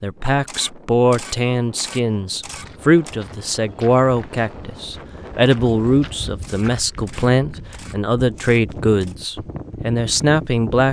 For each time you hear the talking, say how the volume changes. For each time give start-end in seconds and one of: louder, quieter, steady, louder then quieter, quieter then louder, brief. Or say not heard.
0.0-10.8 steady.